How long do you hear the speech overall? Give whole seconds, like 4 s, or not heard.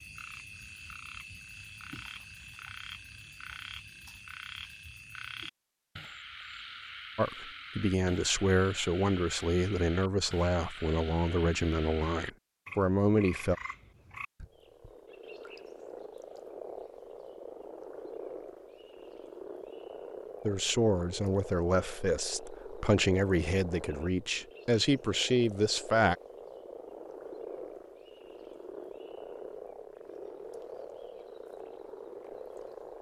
12 s.